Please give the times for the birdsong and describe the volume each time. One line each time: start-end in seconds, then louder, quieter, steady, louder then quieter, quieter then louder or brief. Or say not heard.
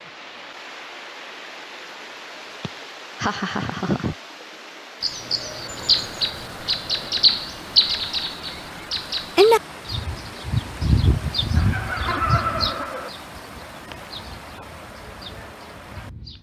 5.0-16.3 quieter.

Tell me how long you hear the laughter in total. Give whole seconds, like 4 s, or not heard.
3 s.